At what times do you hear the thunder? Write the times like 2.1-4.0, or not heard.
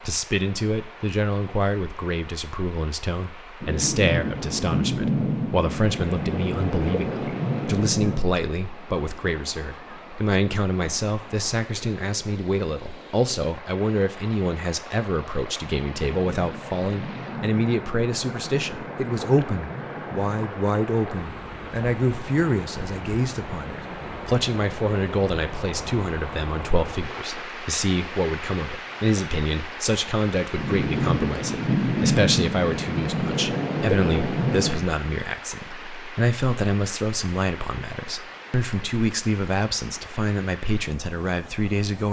3.6-8.3, 16.1-20.6, 30.6-34.9.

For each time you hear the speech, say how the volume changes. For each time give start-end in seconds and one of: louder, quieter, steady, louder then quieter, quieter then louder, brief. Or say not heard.
0.1-42.0 steady.